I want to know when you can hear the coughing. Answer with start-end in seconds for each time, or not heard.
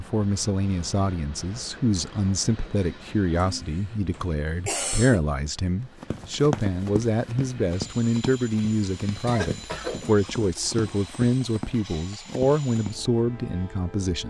3.4-5.2, 9.2-10.8.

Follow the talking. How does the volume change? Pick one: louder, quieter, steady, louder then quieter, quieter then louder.
steady.